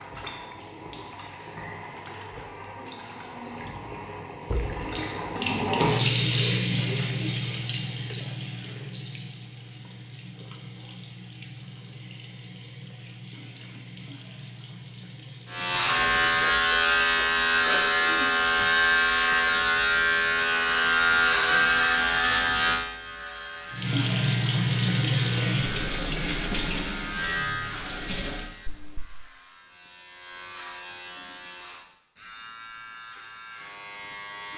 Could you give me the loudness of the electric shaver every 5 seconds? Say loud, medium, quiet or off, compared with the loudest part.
off, off, off, loud, loud, quiet, quiet.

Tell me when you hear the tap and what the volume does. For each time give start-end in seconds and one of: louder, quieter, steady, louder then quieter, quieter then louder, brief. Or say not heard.
0.0-16.7 louder then quieter
23.7-28.5 quieter.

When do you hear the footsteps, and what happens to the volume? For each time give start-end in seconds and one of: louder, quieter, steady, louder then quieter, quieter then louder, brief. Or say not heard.
not heard.